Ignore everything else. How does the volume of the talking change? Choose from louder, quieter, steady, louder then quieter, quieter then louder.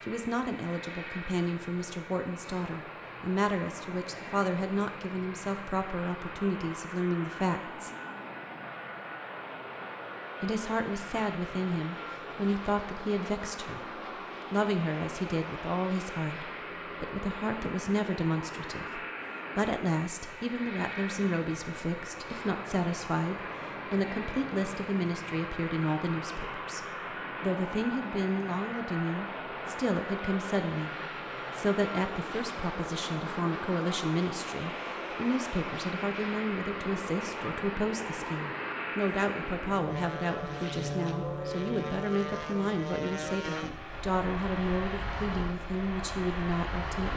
steady.